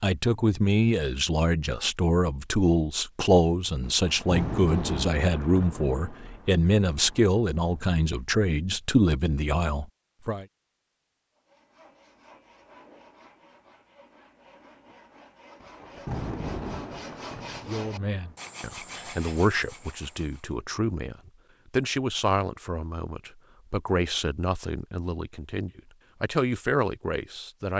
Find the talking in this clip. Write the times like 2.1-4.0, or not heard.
0.0-10.4, 17.6-27.7.